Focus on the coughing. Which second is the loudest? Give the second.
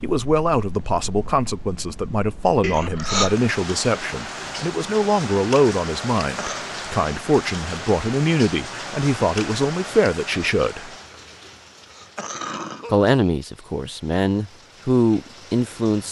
3 s.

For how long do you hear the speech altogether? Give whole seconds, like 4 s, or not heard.
14 s.